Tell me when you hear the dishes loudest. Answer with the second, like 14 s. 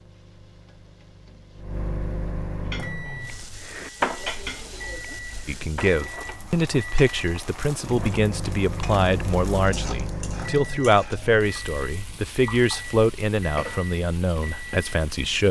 4 s.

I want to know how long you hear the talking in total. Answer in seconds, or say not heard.
10 s.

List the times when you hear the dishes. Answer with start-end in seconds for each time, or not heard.
2.6-6.0.